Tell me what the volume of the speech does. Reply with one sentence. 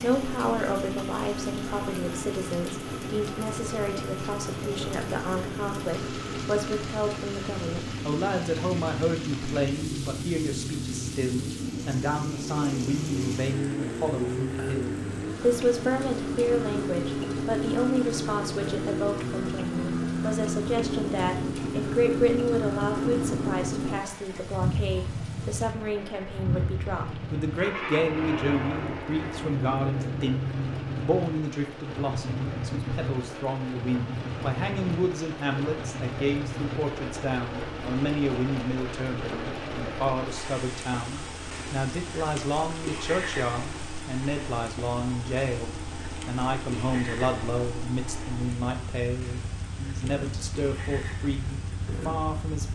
The loudness of the speech stays about the same.